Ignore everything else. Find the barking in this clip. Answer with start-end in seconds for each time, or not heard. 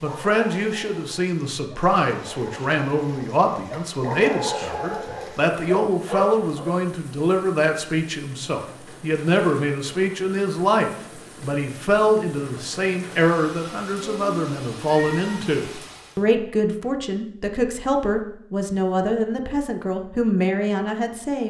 0.0-6.7.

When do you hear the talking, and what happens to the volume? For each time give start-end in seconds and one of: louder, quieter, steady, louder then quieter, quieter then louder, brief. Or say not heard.
0.0-21.4 steady.